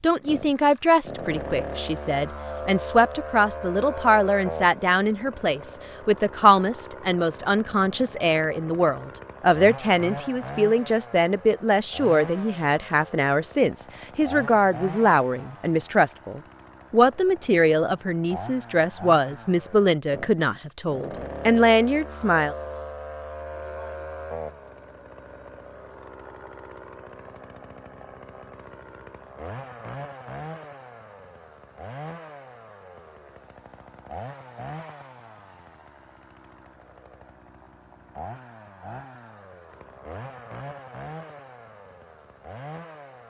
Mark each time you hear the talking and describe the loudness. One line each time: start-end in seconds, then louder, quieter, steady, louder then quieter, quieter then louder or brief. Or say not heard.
0.0-22.6 steady.